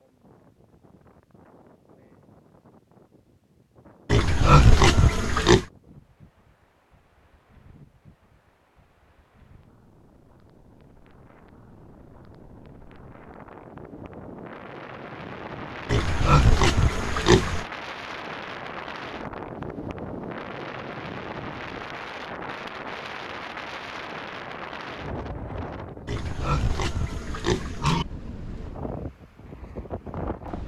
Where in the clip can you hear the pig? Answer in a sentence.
The pig can be heard from 4.1 to 5.7 s, from 15.8 to 17.6 s and from 26.1 to 28.1 s.